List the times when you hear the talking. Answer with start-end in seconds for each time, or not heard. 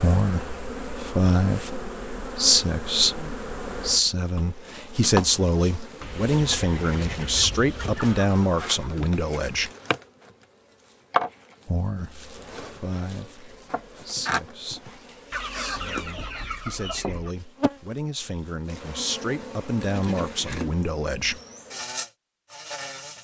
0.0-9.7, 11.7-21.4.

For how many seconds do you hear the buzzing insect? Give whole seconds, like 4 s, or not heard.
23 s.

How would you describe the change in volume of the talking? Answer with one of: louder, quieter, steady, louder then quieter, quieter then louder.
quieter then louder.